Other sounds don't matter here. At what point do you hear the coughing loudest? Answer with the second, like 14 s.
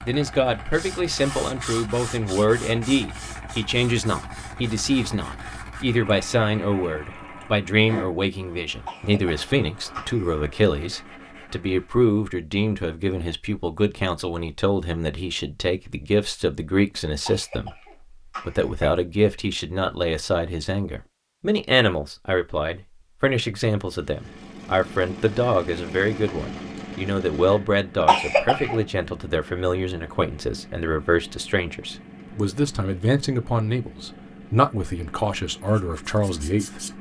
28 s.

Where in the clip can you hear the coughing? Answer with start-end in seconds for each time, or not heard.
8.8-10.4, 17.1-18.9, 28.0-28.8.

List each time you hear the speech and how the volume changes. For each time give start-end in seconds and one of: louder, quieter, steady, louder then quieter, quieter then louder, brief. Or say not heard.
0.1-36.9 steady.